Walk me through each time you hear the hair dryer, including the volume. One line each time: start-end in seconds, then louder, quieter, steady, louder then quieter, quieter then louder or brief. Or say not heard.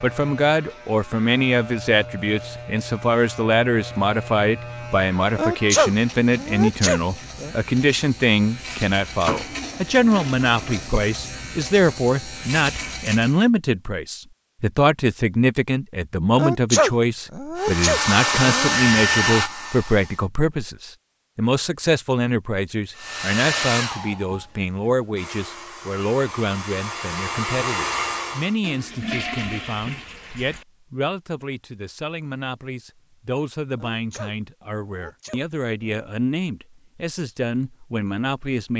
17.6-20.2 brief
22.9-28.6 quieter then louder.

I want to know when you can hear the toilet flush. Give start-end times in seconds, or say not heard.
9.2-10.8, 28.6-30.6.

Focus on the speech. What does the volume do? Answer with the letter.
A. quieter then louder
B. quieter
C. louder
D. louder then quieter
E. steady
B.